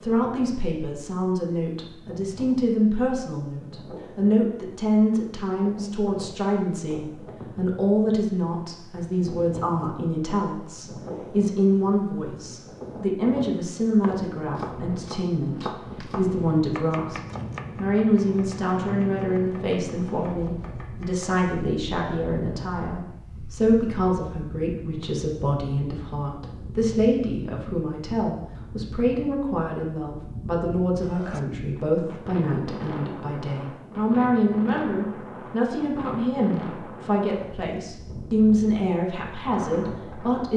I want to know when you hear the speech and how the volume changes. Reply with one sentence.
You can hear the speech from 0.0 to 40.5 s, at a steady volume.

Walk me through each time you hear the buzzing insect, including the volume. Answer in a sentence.
You can't hear the buzzing insect here.